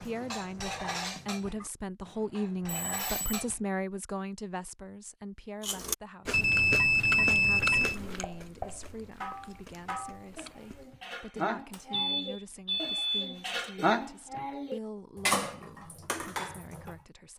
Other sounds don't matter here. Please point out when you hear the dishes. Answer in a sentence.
You can hear the dishes from 0.0 to 3.6 s and from 6.8 to 17.0 s.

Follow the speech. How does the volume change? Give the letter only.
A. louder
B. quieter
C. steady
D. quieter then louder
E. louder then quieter
B.